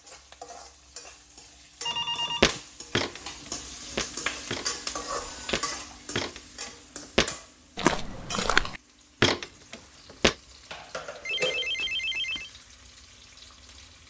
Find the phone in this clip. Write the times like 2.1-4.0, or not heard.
1.9-2.5, 5.1-5.7, 11.2-12.5.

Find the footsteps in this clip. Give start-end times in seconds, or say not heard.
2.4-10.3.